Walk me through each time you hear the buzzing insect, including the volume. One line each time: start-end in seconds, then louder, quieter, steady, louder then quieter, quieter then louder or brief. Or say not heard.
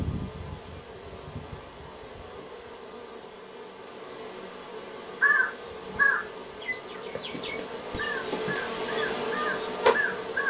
0.0-10.4 louder.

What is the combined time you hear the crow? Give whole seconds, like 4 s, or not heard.
5 s.